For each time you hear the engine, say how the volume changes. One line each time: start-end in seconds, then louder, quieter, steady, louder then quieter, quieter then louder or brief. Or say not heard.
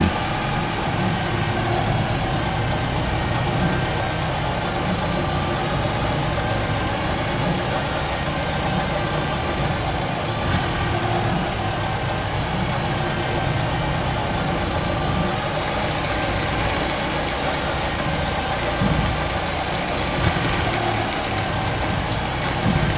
0.0-22.9 steady.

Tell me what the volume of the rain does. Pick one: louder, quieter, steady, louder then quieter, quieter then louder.
steady.